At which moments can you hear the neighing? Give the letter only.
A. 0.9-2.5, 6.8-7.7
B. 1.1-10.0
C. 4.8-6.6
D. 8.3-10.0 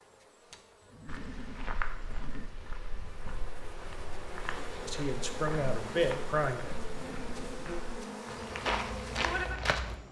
A.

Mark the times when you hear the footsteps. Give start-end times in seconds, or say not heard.
1.1-10.0.